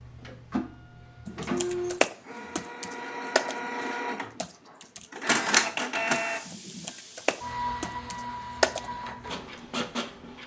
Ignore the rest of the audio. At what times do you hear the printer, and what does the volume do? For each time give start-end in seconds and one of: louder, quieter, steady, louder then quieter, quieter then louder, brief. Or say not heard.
0.0-10.4 louder then quieter.